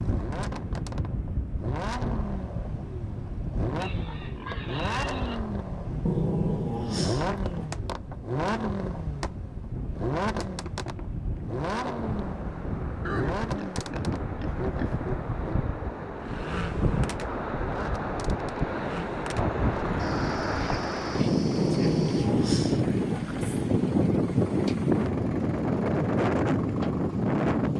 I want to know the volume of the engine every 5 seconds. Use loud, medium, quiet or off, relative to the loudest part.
loud, loud, loud, medium, medium, medium.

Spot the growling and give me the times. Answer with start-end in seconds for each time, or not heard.
6.0-7.7, 21.6-23.5.